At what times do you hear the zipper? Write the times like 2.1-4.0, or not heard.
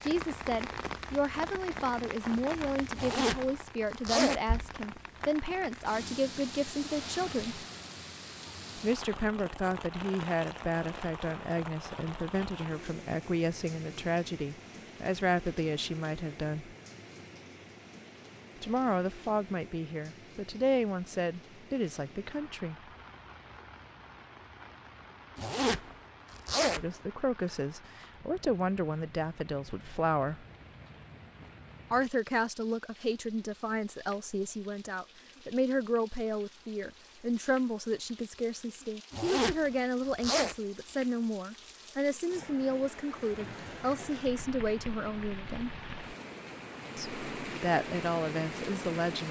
3.0-4.4, 25.4-26.9, 39.1-40.5.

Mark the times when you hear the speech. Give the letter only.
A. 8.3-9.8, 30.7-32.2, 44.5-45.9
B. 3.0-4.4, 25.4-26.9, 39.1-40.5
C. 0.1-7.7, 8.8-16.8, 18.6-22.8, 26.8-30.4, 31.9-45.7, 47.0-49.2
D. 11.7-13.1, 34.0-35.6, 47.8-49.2
C.